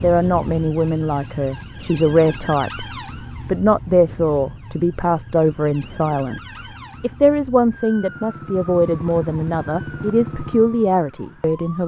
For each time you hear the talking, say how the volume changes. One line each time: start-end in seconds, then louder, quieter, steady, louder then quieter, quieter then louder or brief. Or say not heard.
0.0-2.9 brief
3.5-11.8 steady.